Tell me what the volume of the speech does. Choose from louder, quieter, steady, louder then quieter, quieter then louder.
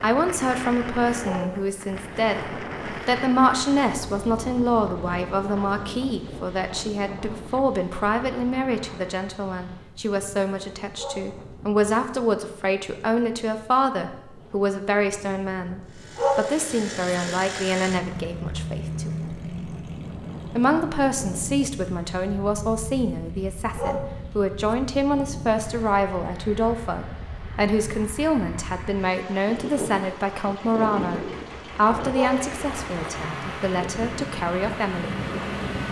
steady.